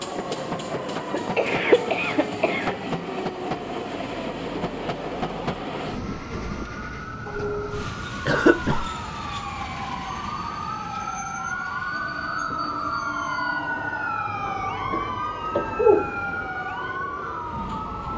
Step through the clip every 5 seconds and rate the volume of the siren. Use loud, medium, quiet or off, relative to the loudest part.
medium, medium, loud, loud.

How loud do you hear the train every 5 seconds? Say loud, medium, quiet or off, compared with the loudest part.
loud, loud, medium, medium.